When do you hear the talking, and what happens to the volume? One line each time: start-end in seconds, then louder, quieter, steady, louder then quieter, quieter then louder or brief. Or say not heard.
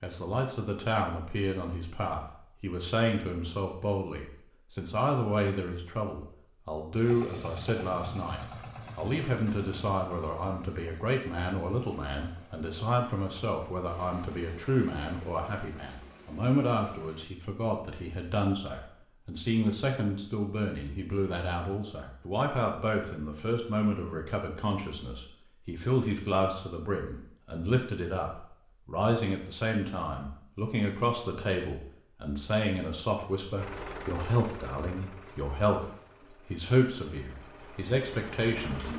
0.0-38.9 steady.